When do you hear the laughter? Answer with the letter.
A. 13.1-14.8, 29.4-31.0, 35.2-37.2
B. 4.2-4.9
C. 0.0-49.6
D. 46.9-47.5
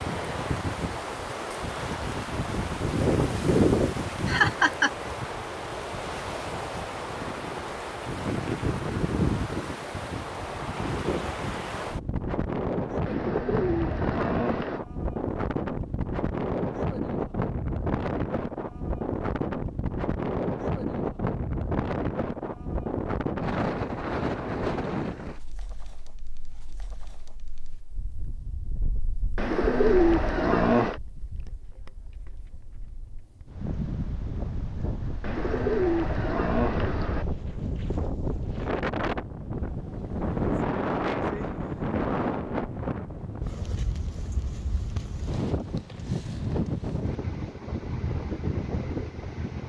B.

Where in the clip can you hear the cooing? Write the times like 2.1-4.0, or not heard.
13.1-14.8, 29.4-31.0, 35.2-37.2.